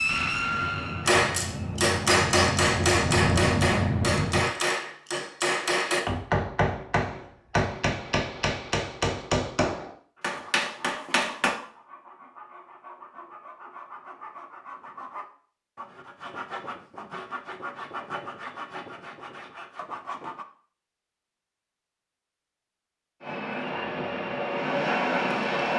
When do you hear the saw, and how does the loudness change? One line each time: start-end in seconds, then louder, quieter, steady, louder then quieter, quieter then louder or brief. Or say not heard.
10.2-20.4 louder.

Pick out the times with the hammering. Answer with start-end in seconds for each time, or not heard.
1.1-11.6.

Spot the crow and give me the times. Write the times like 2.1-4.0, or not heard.
not heard.